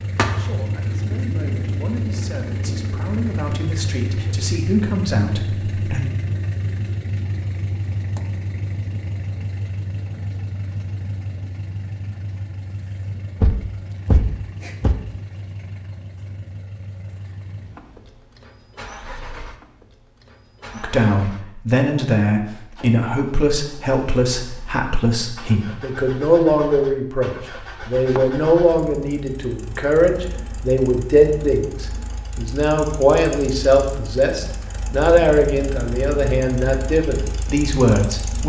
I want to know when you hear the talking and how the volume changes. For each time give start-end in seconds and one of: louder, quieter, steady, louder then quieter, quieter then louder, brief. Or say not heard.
0.2-6.0 louder
20.8-38.4 steady.